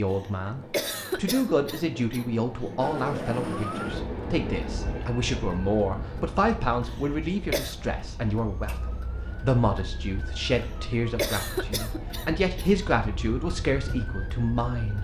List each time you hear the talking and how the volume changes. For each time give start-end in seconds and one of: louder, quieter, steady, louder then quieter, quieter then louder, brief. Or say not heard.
0.0-14.9 steady.